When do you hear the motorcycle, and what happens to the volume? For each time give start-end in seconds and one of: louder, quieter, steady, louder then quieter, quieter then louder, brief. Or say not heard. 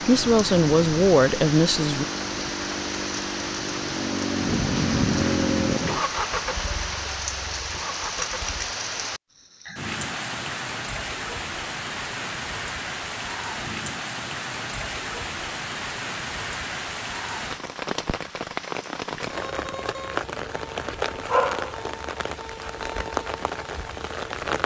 0.0-8.8 louder then quieter.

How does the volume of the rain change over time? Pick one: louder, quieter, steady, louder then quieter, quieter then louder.
steady.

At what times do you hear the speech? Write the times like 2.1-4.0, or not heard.
0.1-2.0.